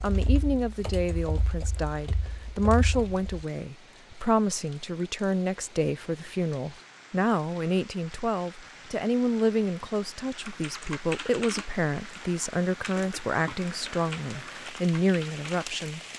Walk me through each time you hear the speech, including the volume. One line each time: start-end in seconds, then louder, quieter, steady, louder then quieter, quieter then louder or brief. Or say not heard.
0.0-16.0 steady.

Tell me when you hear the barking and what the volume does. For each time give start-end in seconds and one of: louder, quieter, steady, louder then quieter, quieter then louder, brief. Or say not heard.
not heard.